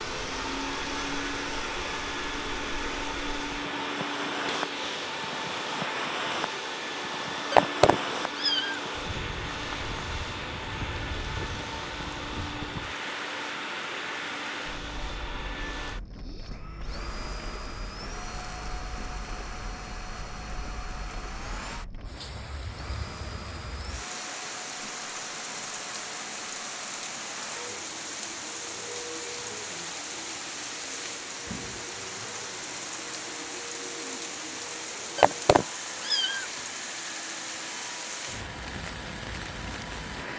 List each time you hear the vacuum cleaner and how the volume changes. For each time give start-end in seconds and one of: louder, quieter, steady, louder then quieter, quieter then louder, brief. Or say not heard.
0.0-40.3 quieter.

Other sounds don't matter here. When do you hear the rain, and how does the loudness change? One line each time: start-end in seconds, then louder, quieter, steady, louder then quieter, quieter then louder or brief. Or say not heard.
0.0-40.3 quieter then louder.